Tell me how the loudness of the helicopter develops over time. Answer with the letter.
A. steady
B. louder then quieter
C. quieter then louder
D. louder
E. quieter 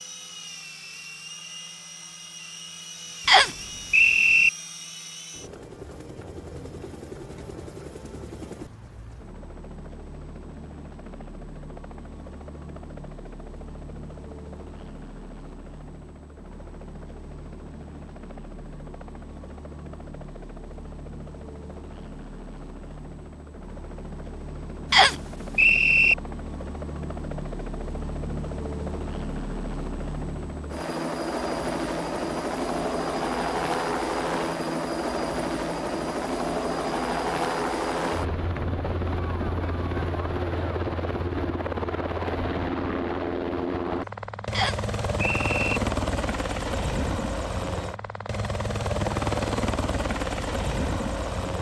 D.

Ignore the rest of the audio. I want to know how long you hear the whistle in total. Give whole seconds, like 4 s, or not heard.
4 s.